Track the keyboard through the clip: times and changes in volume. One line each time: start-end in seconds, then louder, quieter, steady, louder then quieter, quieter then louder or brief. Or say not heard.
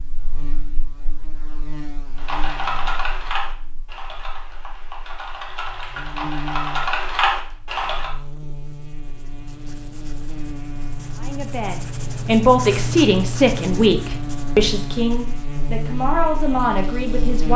2.1-8.1 quieter then louder.